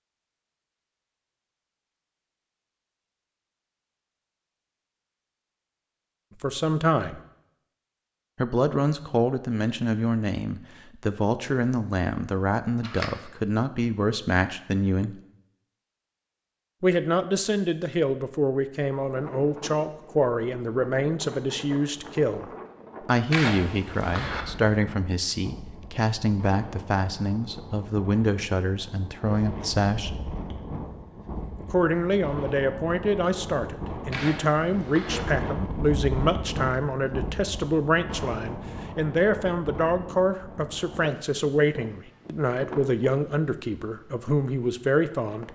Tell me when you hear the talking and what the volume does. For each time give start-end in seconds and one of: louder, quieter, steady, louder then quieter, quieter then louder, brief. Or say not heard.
6.4-7.2 brief
8.3-15.2 steady
16.8-30.1 steady
31.6-45.4 steady.